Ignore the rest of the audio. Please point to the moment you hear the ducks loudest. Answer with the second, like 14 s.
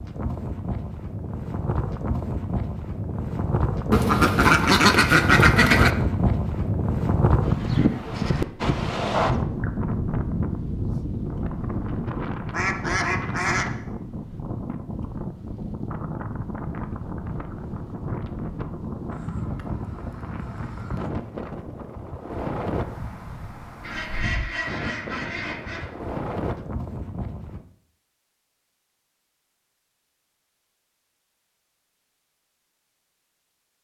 5 s.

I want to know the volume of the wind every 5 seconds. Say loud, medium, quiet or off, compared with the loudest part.
medium, loud, medium, medium, medium, medium, off.